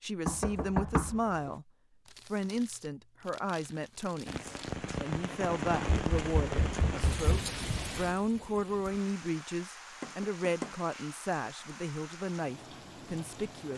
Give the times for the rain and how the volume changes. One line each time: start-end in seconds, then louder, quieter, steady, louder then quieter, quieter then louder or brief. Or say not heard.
4.2-13.7 quieter.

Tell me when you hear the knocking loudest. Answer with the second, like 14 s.
1 s.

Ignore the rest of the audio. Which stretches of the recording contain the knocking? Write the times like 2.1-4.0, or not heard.
0.2-1.5, 6.0-7.5, 10.0-10.7.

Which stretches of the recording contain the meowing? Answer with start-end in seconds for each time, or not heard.
not heard.